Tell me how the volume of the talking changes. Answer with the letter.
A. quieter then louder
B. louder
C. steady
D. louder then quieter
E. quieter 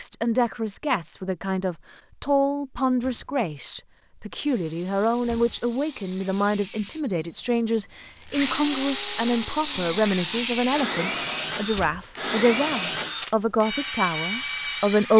C.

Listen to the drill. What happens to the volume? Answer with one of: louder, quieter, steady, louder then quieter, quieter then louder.
louder.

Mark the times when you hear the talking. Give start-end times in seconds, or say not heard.
0.0-15.1.